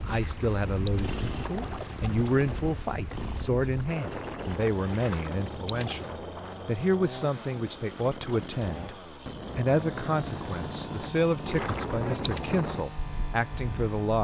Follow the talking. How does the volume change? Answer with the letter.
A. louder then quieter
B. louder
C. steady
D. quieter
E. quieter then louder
C.